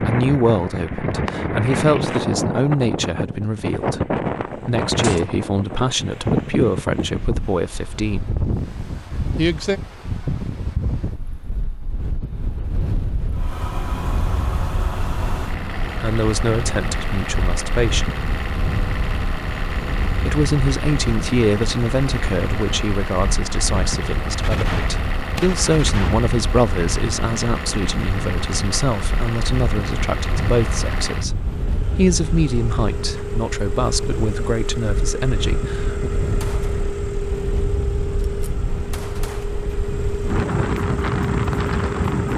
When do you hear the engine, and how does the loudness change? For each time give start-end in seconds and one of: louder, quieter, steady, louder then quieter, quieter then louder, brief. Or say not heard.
13.3-42.3 steady.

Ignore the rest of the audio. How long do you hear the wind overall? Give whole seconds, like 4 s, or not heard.
42 s.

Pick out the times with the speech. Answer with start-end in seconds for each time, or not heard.
0.0-8.4, 9.3-9.8, 15.8-18.1, 20.2-36.1.